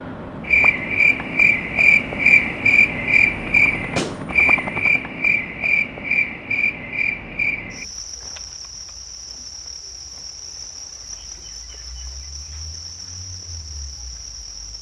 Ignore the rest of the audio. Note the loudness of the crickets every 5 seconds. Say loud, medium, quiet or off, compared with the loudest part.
loud, medium, quiet.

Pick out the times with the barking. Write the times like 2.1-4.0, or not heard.
not heard.